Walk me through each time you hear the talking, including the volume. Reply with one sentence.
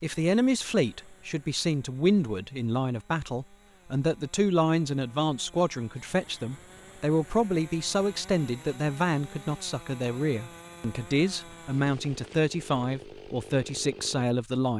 The talking can be heard from 0.0 to 14.7 s, at a steady volume.